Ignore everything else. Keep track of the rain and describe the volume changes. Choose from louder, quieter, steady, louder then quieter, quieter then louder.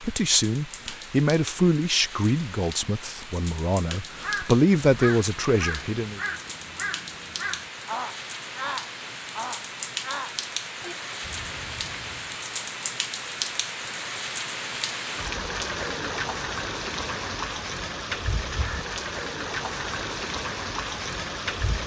louder.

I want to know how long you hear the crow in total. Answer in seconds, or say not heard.
8 s.